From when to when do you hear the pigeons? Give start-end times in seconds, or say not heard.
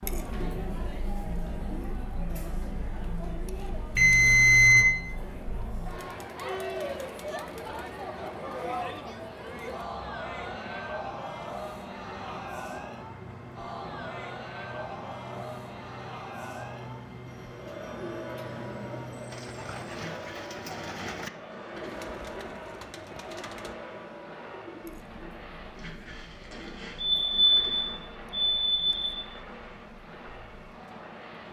17.2-25.1.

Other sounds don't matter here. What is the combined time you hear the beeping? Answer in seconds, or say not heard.
3 s.